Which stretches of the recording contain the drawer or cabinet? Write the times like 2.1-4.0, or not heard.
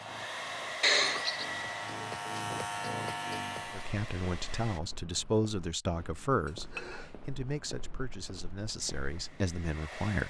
not heard.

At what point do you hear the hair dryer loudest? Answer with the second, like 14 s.
1 s.